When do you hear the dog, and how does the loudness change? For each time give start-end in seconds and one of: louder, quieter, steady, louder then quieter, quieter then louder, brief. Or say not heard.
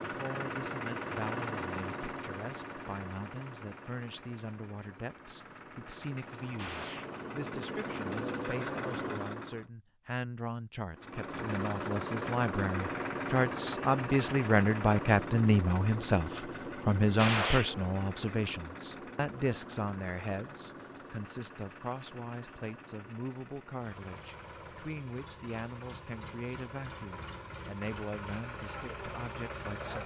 not heard.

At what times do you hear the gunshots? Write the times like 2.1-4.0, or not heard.
6.5-7.1, 17.1-17.7.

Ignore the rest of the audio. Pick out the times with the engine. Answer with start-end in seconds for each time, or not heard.
0.0-9.7, 10.9-30.0.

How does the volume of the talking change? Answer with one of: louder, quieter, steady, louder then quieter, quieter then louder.
louder then quieter.